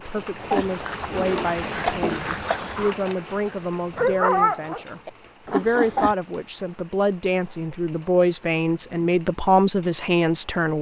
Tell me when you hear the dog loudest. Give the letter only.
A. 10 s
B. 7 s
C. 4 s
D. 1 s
C.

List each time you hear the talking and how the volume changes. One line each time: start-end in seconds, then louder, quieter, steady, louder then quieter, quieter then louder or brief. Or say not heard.
0.0-10.7 louder.